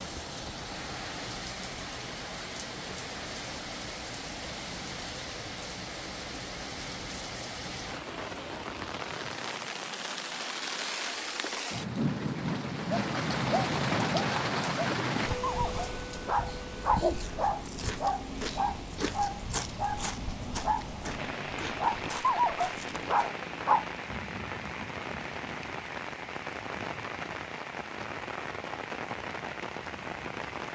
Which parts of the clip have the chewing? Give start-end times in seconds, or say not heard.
17.0-23.1.